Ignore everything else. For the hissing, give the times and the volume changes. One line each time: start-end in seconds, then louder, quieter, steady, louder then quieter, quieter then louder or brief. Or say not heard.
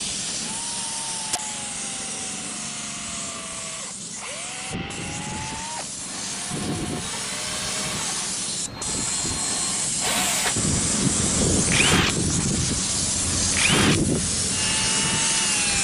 0.0-15.8 louder.